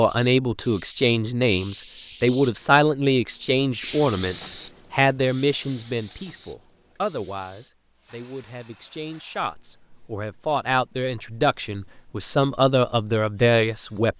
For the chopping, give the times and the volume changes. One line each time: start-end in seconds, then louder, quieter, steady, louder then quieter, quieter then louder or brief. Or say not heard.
not heard.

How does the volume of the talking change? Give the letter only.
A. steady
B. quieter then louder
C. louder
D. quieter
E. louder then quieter
B.